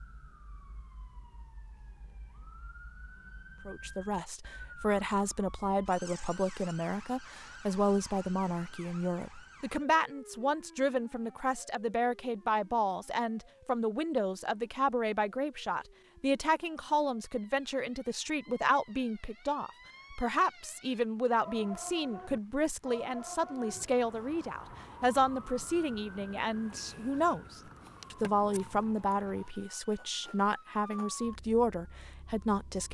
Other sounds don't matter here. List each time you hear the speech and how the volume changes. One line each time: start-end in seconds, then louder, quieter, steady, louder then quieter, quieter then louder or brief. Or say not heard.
3.6-32.9 steady.